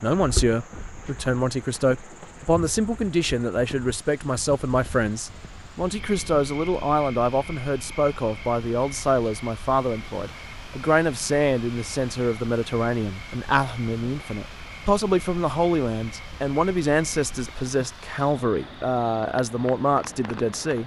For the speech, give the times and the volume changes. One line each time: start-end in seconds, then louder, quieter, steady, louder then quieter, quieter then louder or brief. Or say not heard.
0.0-20.8 steady.